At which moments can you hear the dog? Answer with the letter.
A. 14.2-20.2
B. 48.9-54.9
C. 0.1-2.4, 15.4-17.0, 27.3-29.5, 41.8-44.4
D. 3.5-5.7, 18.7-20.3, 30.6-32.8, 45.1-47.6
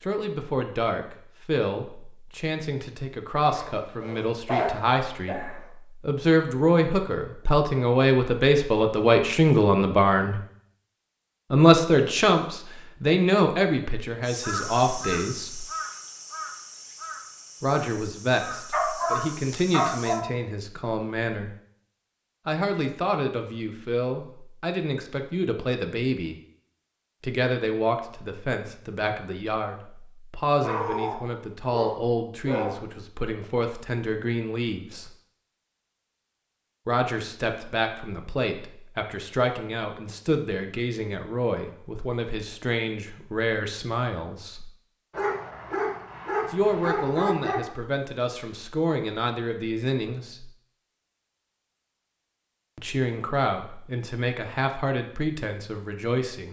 D.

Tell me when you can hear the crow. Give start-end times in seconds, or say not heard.
14.2-20.2.